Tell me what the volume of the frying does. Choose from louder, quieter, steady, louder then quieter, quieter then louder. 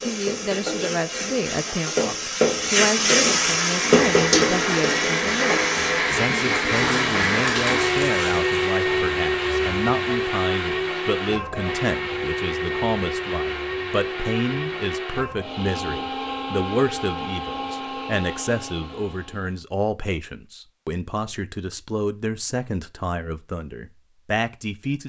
louder then quieter.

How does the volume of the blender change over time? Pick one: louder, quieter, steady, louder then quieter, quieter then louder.
quieter.